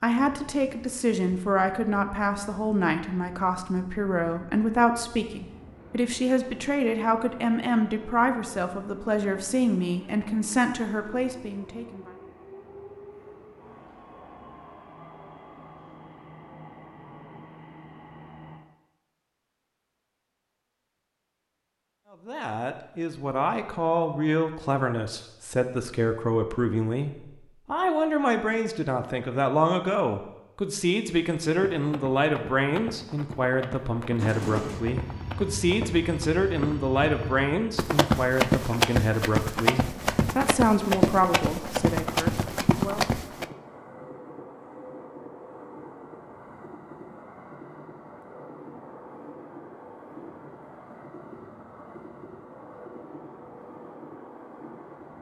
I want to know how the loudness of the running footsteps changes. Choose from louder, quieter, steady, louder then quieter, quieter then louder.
louder.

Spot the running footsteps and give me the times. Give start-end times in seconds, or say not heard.
31.5-43.5.